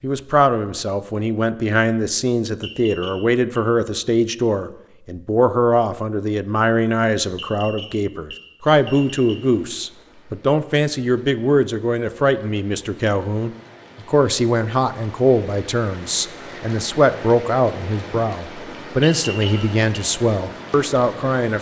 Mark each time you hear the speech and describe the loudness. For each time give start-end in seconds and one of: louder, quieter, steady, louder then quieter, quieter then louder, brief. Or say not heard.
0.0-21.5 steady.